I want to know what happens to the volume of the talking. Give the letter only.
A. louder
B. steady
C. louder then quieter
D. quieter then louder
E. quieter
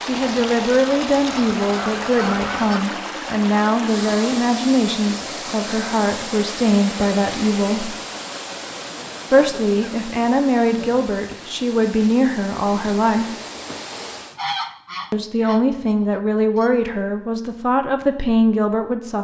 B.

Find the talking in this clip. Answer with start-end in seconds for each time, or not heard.
0.0-7.9, 9.3-13.3, 15.1-19.2.